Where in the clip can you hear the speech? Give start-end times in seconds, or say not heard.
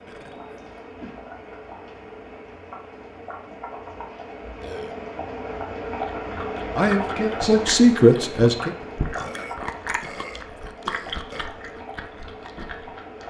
6.8-8.7.